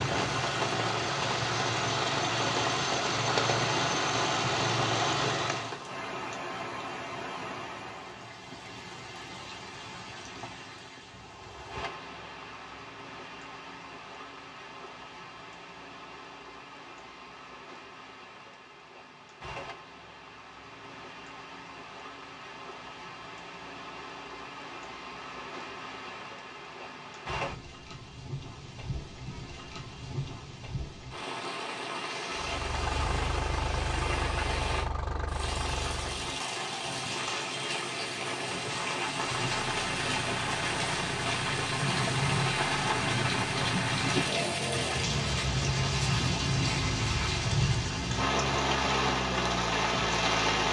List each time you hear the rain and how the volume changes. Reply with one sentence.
You can hear the rain from 0.0 to 50.6 s, getting quieter then louder.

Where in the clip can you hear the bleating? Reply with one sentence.
You can't hear the bleating here.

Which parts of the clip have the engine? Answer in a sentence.
The engine can be heard from 0.0 to 5.8 s, from 32.4 to 36.4 s and from 39.1 to 50.6 s.